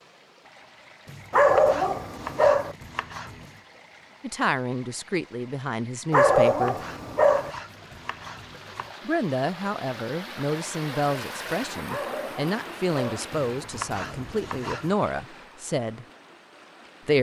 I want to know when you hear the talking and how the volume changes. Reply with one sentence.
You can hear the talking briefly from 4.2 to 6.8 s; and from 9.1 to 16.1 s, at a steady volume.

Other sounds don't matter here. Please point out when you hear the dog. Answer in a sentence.
The dog can be heard from 1.3 to 2.8 s, from 6.1 to 7.5 s and from 11.8 to 13.3 s.